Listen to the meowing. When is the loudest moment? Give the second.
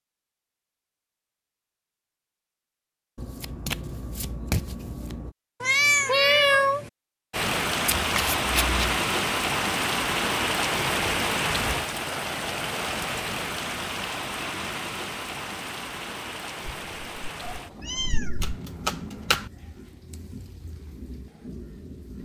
6 s.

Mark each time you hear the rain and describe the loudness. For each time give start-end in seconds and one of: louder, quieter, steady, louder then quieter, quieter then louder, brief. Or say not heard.
7.3-22.1 quieter.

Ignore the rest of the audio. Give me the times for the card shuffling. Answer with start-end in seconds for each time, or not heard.
3.1-5.3, 7.8-8.9, 18.4-19.5.